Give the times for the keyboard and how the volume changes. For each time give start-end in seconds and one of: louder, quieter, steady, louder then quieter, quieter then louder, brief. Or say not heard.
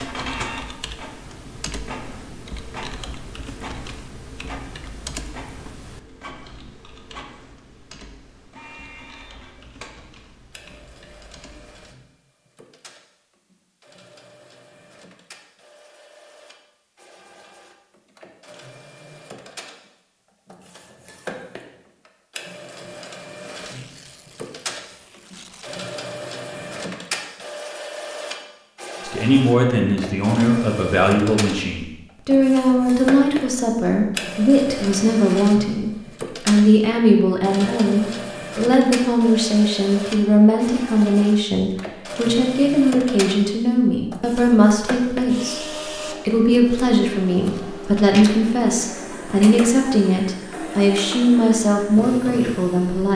0.0-11.9 quieter.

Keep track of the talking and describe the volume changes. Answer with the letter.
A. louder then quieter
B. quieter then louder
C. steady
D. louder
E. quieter
C.